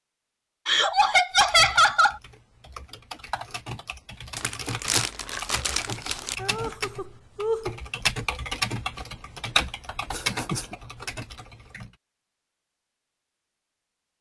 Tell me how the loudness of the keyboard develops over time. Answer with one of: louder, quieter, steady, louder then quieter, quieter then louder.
louder.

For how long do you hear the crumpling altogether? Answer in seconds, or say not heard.
2 s.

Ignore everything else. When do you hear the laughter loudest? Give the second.
2 s.